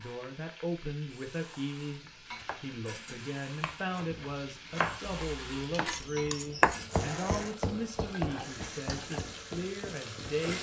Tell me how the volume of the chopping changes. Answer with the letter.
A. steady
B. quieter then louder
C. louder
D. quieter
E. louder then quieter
E.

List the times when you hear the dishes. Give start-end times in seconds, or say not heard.
2.1-3.3, 6.0-7.0.